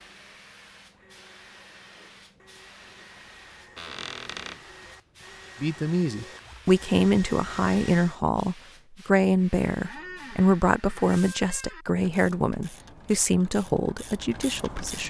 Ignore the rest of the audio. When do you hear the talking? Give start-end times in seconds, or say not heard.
5.6-15.0.